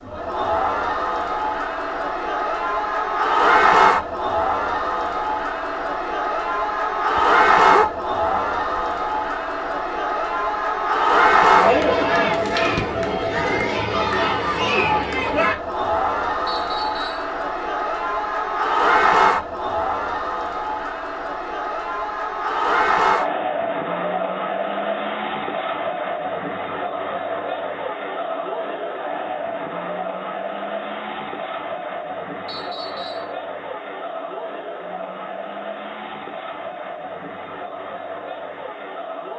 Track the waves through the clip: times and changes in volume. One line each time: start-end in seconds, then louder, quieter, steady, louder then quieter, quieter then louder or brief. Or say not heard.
not heard.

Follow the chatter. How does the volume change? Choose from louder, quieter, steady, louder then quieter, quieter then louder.
quieter.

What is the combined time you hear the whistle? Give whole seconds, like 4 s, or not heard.
2 s.